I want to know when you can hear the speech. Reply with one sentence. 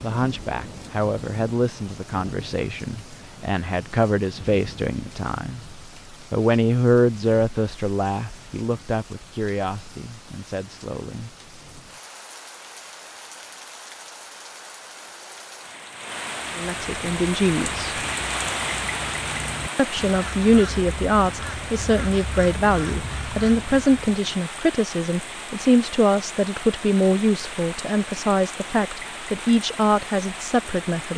You can hear the speech from 0.0 to 11.3 s, from 16.6 to 17.9 s and from 19.8 to 31.1 s.